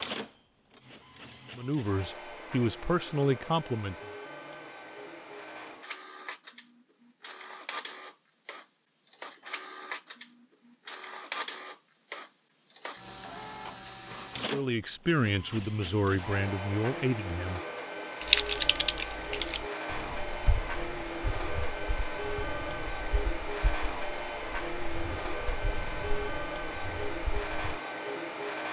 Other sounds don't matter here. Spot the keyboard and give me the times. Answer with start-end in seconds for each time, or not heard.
18.2-27.8.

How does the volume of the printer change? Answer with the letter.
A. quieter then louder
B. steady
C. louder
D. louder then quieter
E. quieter
C.